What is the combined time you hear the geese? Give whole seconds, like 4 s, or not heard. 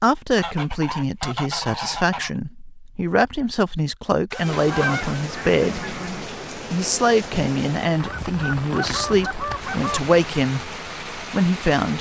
6 s.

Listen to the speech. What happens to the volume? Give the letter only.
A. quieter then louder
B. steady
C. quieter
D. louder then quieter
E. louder
B.